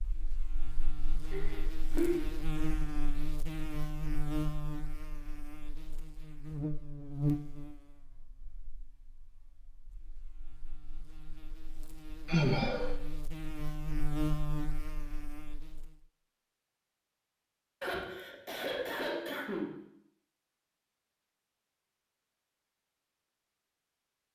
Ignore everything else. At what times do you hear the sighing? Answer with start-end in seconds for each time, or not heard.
1.3-2.2, 12.2-12.9, 17.8-19.8.